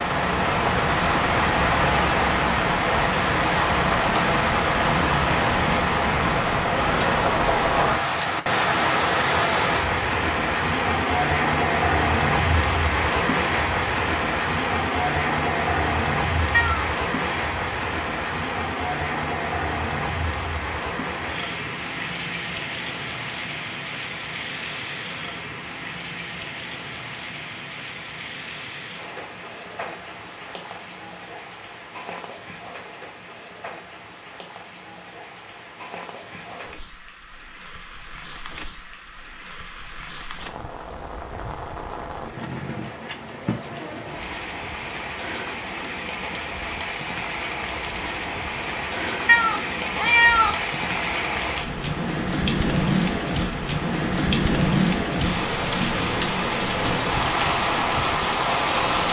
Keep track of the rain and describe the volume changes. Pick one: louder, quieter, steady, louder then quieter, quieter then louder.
quieter then louder.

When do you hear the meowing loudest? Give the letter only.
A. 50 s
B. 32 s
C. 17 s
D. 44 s
A.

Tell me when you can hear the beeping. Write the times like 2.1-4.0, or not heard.
not heard.